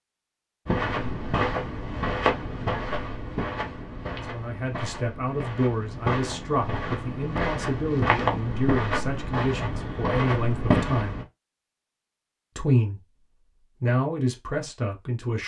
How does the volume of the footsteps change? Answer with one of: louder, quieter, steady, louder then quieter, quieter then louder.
quieter then louder.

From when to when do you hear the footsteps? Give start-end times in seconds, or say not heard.
0.7-11.2.